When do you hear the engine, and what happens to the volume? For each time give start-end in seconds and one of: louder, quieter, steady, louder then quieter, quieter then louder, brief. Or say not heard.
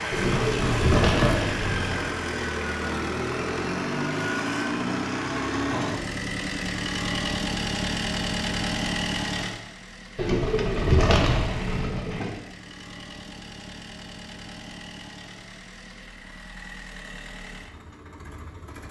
0.0-18.8 quieter.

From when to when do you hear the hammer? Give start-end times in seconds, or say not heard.
0.1-2.1.